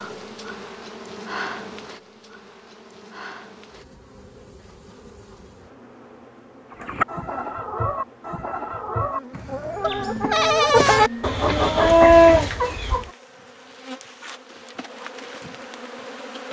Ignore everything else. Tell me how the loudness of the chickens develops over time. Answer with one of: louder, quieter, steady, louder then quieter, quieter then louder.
louder.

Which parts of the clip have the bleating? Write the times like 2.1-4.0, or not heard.
9.8-11.4.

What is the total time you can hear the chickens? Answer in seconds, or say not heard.
6 s.